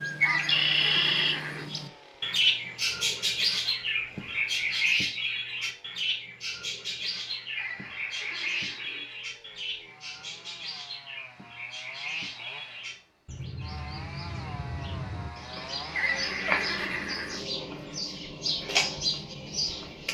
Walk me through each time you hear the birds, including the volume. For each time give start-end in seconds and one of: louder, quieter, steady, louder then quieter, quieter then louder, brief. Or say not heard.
0.0-20.0 quieter then louder.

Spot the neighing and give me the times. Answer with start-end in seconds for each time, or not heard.
0.2-1.7, 7.5-9.1, 15.9-17.4.